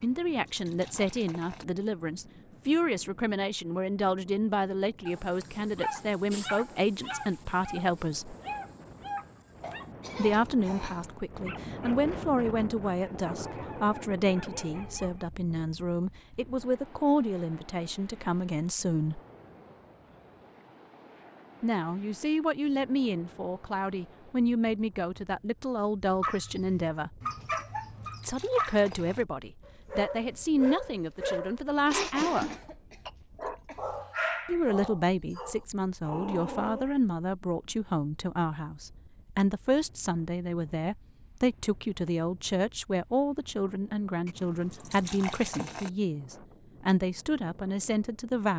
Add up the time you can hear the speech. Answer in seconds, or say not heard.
41 s.